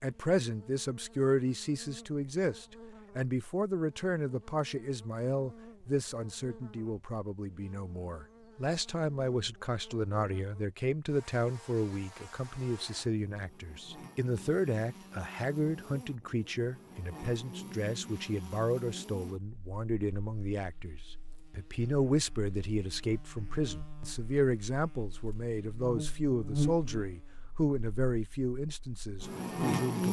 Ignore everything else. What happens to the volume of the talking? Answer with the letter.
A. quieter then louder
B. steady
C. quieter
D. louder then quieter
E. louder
B.